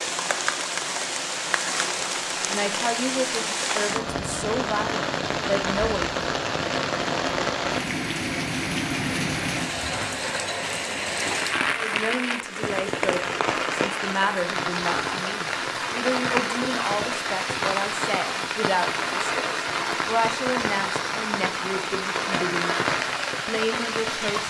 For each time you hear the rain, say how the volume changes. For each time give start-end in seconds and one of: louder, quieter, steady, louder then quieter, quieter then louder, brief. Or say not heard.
0.0-24.4 steady.